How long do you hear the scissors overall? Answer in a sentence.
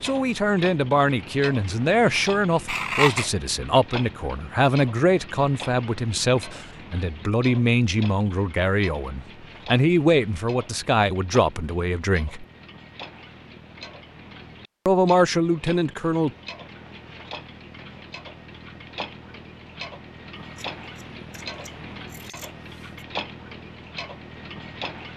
You can hear the scissors for 3 seconds altogether.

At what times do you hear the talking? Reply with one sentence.
You can hear the talking from 0.0 to 12.4 s and from 14.8 to 16.3 s.